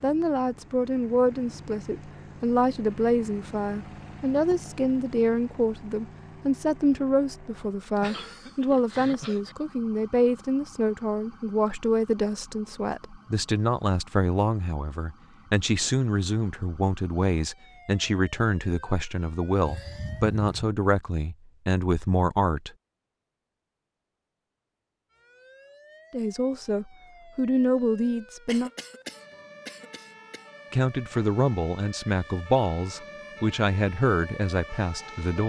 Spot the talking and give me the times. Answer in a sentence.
The talking can be heard from 0.0 to 22.7 s, from 26.1 to 28.7 s and from 30.7 to 35.4 s.